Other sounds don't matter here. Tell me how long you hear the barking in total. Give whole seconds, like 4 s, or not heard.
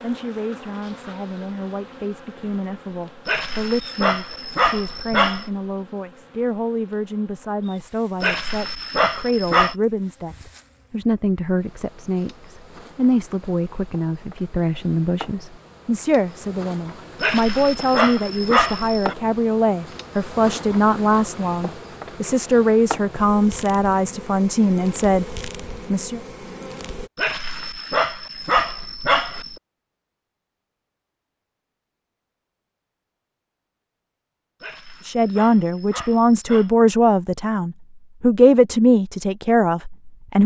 10 s.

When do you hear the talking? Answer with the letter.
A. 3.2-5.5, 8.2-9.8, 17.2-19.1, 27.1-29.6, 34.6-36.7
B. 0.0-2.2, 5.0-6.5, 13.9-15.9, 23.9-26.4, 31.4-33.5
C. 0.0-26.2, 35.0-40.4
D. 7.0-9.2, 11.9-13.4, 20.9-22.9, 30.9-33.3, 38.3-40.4
C.